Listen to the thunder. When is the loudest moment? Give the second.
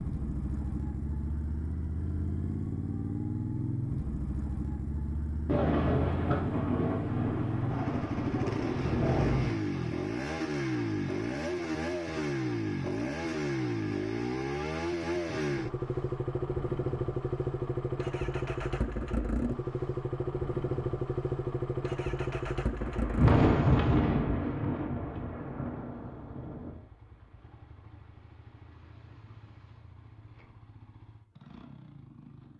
23 s.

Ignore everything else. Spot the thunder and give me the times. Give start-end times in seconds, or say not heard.
5.5-9.5, 22.8-26.8.